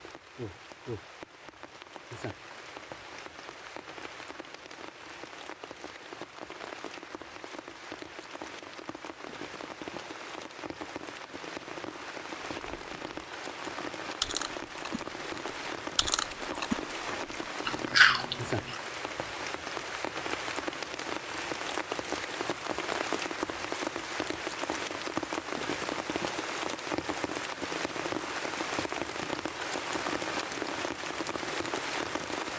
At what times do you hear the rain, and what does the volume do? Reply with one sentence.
The rain can be heard from 0.0 to 32.5 s, getting louder.